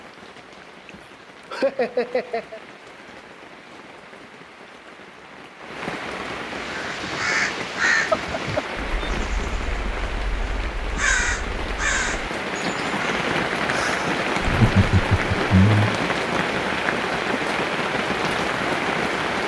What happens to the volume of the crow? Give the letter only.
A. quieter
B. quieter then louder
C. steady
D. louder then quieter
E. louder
B.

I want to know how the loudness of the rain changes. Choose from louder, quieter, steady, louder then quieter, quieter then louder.
louder.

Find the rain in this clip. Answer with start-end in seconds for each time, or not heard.
0.0-19.4.